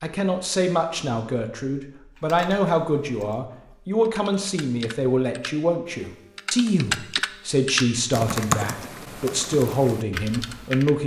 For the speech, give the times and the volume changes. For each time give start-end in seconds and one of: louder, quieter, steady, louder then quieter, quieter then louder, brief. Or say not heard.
0.0-11.0 steady.